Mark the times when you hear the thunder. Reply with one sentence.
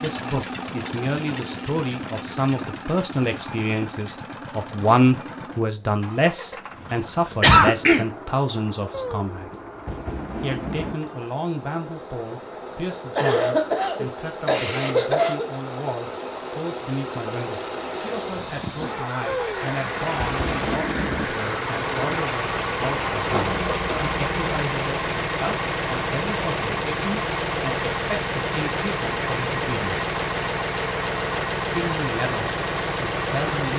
The thunder can be heard from 8.9 to 10.9 s and from 19.2 to 21.3 s.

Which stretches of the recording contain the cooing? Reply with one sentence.
The cooing can't be heard in this clip.